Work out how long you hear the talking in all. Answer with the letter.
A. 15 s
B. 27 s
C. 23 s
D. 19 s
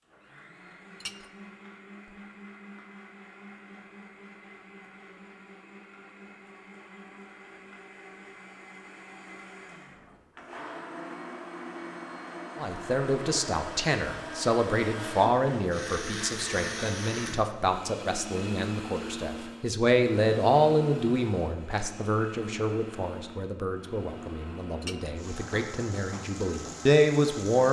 A.